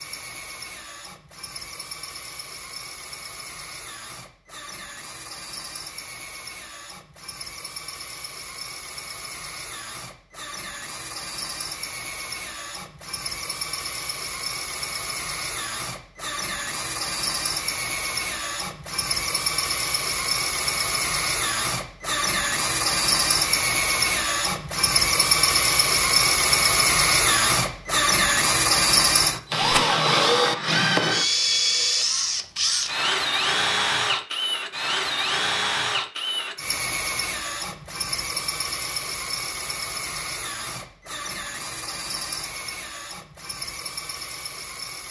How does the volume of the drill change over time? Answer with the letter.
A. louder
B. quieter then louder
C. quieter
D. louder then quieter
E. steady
D.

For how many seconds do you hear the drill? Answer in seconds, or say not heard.
45 s.